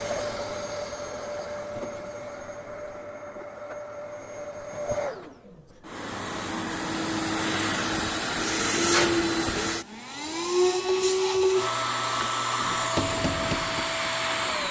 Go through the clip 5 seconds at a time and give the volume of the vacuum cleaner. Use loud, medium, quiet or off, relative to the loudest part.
medium, loud, loud.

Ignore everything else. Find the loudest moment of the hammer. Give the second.
13 s.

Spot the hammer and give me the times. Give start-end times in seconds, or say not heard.
12.6-14.6.